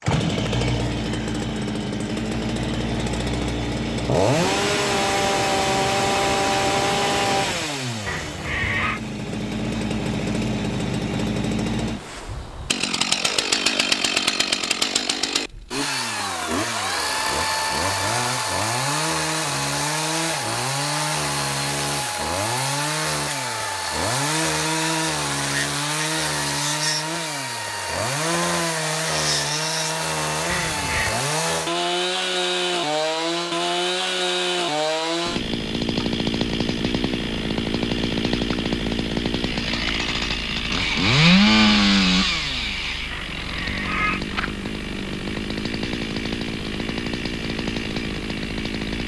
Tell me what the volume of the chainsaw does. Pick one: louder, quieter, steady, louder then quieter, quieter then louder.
steady.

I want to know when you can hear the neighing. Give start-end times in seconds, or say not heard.
8.1-9.0, 30.4-31.1, 43.1-44.2.